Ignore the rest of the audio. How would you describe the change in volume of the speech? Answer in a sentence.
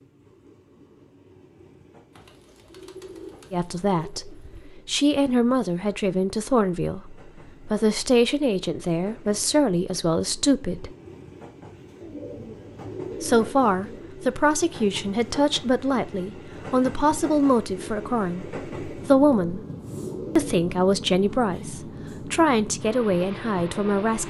The loudness of the speech stays about the same.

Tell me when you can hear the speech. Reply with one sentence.
You can hear the speech from 3.5 to 10.9 s, from 13.2 to 19.6 s and from 20.4 to 24.2 s.